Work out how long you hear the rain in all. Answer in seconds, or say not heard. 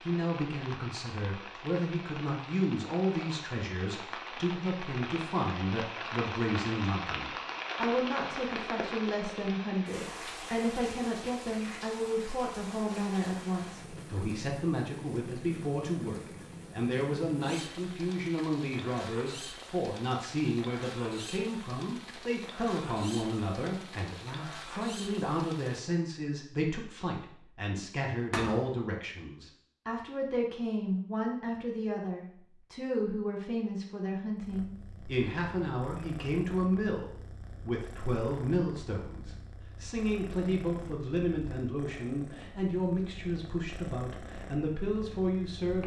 26 s.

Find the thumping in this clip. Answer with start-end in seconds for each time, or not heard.
28.3-28.8.